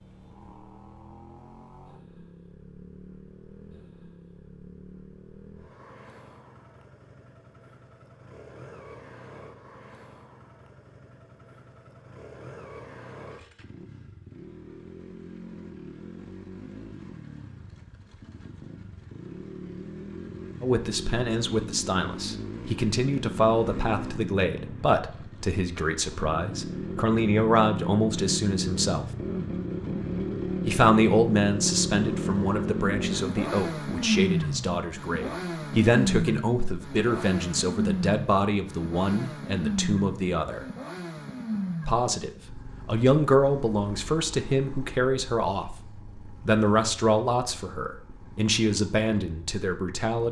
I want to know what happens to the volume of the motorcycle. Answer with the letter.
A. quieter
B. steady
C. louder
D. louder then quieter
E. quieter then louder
D.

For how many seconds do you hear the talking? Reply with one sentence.
The talking can be heard for 27 seconds in total.